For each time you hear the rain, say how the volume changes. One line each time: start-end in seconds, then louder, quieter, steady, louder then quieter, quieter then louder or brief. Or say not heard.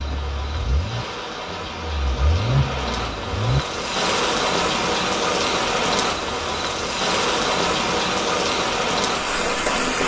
0.0-10.0 louder.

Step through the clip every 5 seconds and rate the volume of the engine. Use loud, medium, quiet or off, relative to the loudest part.
loud, off.